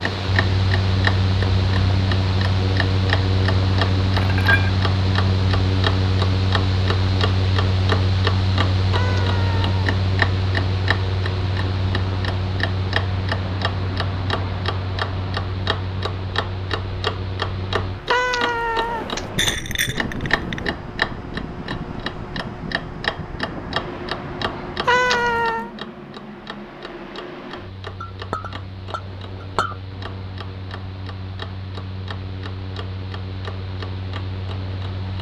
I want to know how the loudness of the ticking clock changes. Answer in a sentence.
The loudness of the ticking clock goes down.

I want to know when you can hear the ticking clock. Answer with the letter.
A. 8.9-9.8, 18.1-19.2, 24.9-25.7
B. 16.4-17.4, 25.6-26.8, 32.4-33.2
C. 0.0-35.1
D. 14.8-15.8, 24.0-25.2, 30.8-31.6
C.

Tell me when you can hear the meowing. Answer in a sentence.
You can hear the meowing from 8.9 to 9.8 s, from 18.1 to 19.2 s and from 24.9 to 25.7 s.